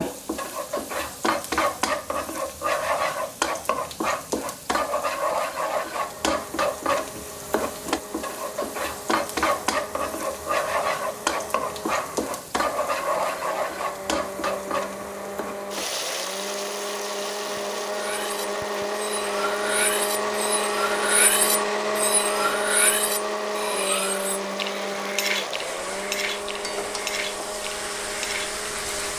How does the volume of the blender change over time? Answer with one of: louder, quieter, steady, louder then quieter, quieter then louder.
louder then quieter.